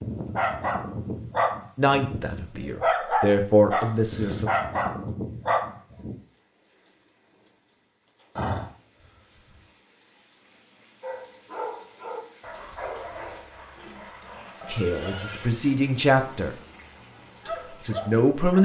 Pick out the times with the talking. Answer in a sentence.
The talking can be heard from 1.8 to 4.5 s, from 14.7 to 16.6 s and from 17.4 to 18.5 s.